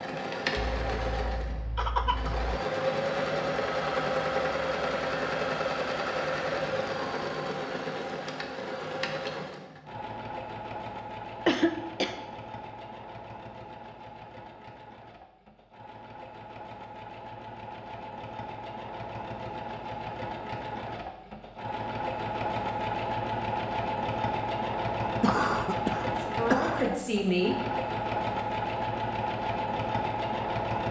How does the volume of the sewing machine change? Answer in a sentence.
The volume of the sewing machine goes down, then up.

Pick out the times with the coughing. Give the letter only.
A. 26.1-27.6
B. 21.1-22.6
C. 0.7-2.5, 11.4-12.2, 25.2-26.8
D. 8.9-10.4
C.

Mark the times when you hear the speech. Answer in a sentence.
You can hear the speech from 26.1 to 27.6 s.